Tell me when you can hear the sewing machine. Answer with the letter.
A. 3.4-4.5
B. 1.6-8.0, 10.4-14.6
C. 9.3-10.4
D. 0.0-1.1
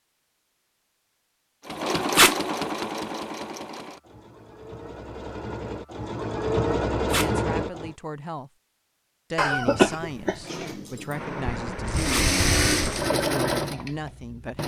B.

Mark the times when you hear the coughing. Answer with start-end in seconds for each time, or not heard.
9.3-10.4.